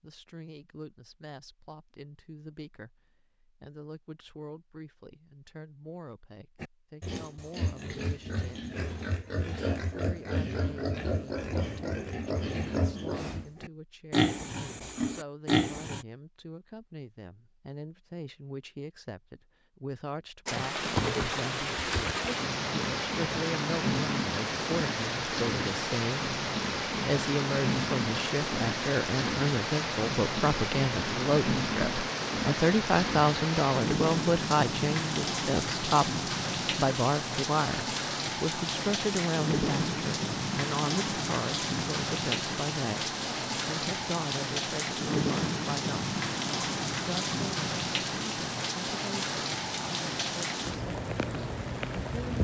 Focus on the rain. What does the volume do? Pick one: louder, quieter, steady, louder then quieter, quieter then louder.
steady.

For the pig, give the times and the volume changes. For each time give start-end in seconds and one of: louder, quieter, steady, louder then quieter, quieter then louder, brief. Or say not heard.
6.6-16.1 louder.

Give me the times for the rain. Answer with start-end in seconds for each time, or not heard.
20.4-52.3.